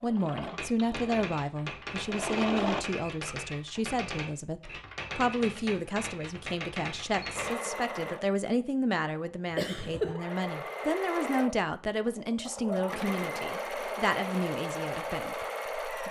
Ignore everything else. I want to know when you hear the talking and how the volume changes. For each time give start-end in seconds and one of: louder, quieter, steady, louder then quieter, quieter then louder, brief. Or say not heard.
0.0-16.0 steady.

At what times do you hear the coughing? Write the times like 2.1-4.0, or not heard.
9.5-10.2.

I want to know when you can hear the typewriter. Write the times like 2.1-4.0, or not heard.
0.6-7.5.